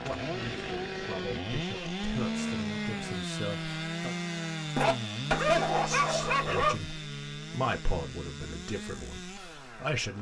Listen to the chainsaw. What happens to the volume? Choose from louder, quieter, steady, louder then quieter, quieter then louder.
quieter.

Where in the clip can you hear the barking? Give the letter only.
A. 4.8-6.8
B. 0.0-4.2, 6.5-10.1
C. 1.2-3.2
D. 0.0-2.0
A.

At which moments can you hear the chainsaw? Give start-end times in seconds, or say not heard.
0.0-10.1.